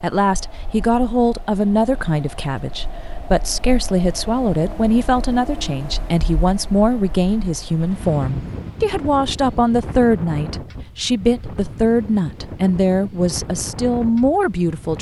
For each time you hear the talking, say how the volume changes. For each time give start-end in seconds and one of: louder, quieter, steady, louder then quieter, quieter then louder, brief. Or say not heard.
0.0-14.9 steady.